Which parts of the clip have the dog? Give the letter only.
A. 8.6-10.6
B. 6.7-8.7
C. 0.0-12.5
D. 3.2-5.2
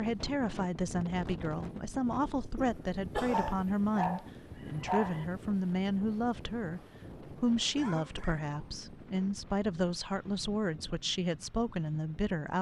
D.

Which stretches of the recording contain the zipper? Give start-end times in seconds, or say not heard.
not heard.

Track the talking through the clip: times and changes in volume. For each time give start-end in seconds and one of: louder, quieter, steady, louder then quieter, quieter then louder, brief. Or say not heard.
0.0-12.5 steady.